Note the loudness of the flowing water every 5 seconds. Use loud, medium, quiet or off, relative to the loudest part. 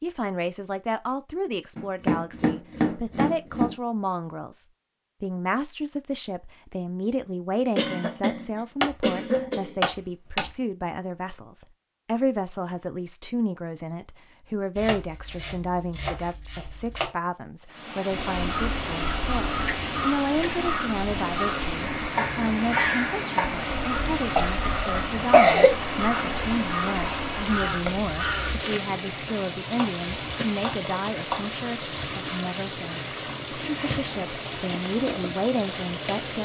off, off, off, loud, loud, loud, loud, loud.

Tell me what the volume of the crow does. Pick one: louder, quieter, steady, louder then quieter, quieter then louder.
steady.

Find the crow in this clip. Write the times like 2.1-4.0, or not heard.
18.1-28.6.